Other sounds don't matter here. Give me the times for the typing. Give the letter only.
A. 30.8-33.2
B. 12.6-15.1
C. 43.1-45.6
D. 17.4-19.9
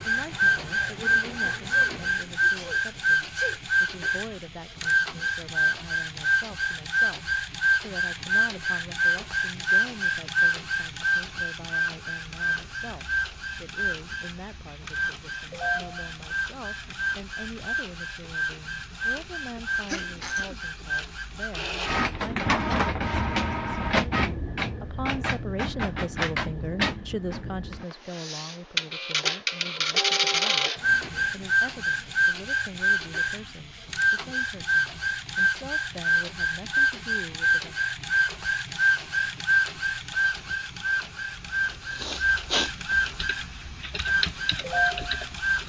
C.